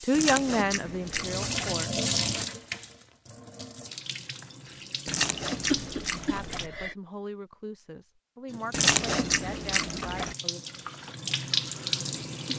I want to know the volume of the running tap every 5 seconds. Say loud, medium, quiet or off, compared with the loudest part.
loud, medium, loud.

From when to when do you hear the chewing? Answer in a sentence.
The chewing can be heard from 0.1 to 1.8 s, from 5.0 to 6.7 s and from 8.7 to 10.3 s.